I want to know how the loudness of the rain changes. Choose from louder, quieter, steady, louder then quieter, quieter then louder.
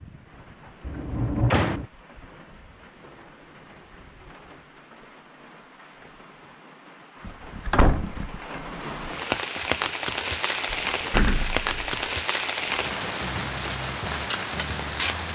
louder.